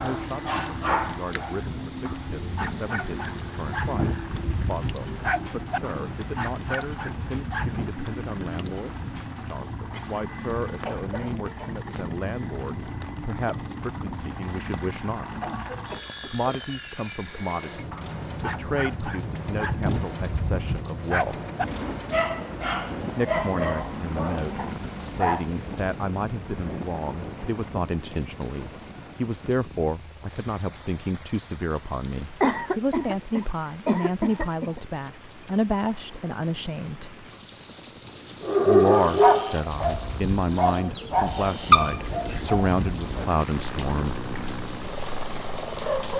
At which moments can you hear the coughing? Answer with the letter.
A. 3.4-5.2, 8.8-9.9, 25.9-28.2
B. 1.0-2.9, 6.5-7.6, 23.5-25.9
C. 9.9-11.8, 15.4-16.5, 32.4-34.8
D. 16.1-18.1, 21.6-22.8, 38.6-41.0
C.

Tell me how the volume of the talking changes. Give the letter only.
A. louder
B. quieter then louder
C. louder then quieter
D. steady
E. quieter
A.